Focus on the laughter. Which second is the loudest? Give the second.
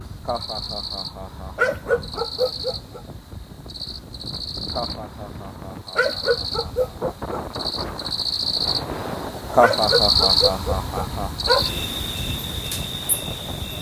10 s.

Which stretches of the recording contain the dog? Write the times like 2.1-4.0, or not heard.
1.6-3.0, 6.0-7.5, 9.6-11.8.